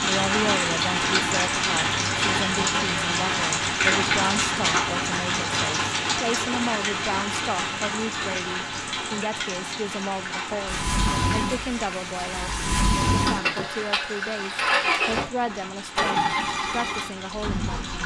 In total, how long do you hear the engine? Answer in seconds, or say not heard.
7 s.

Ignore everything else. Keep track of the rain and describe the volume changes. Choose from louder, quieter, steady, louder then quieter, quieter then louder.
quieter.